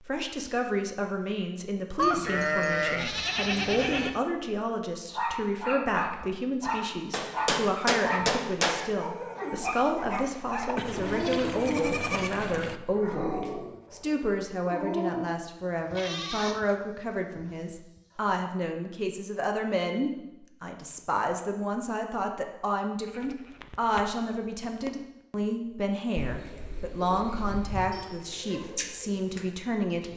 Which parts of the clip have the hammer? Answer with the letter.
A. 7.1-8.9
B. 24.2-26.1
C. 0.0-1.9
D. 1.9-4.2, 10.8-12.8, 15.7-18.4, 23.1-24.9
A.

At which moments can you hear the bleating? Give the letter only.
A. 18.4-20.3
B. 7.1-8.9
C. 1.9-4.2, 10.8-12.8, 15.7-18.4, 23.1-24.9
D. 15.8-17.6
C.